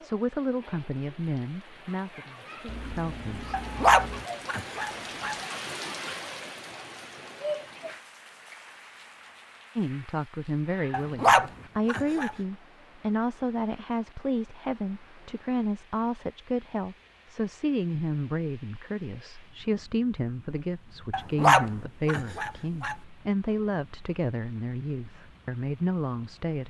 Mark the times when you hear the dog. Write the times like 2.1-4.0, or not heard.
3.5-5.3, 10.9-12.3, 21.1-22.9.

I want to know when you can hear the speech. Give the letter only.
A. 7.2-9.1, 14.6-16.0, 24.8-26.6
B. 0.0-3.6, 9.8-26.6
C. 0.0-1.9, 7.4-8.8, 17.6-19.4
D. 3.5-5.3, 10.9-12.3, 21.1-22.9
B.